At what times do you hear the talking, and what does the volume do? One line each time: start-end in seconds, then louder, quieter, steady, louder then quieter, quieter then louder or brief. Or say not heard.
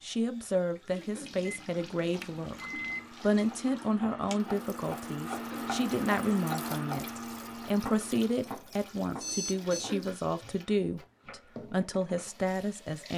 0.0-13.1 steady.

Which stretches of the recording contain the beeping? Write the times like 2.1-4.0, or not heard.
1.2-3.1, 9.2-9.9.